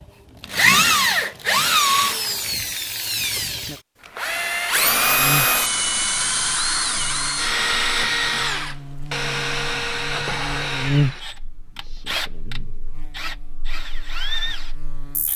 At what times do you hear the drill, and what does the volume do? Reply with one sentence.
You can hear the drill from 0.4 to 15.3 s, getting quieter.